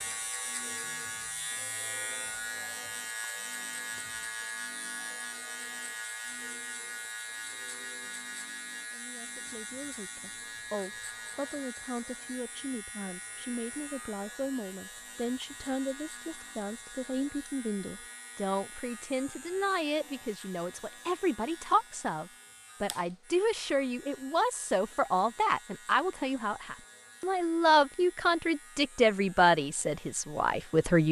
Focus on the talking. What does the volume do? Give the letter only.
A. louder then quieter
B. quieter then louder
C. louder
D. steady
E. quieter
C.